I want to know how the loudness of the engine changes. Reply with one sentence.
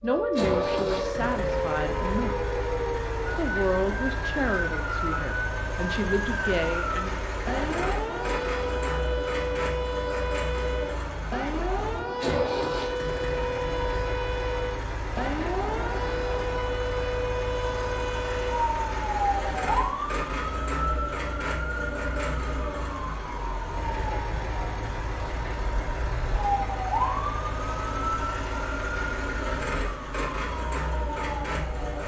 The volume of the engine stays about the same.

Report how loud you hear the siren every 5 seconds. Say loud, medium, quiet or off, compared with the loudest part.
loud, loud, loud, loud, medium, loud, medium.